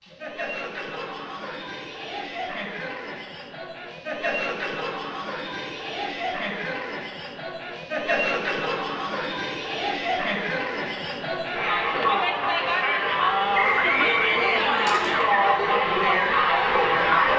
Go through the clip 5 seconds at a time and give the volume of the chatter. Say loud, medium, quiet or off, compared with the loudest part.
quiet, medium, loud, loud.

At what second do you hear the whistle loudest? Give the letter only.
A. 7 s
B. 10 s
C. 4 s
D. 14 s
D.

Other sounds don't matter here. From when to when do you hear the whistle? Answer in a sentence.
You can hear the whistle from 13.5 to 15.1 s.